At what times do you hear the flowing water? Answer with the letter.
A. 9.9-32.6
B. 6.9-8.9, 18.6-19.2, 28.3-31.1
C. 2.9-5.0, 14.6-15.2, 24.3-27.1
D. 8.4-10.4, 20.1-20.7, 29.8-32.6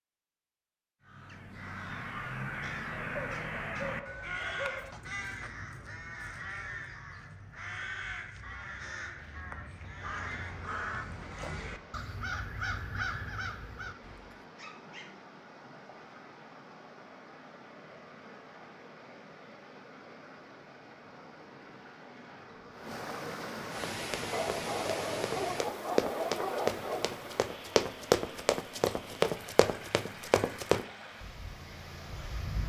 A.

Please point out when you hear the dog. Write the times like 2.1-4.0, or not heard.
2.9-5.0, 14.6-15.2, 24.3-27.1.